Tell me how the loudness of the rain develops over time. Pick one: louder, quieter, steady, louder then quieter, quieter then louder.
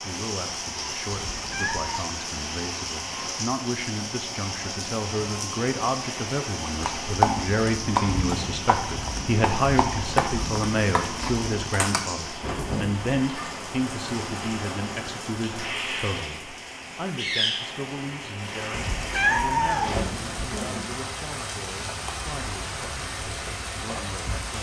steady.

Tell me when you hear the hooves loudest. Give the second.
7 s.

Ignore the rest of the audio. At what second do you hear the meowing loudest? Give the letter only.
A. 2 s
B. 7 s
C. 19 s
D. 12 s
C.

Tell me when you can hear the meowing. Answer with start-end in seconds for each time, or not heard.
1.1-2.0, 18.7-20.4.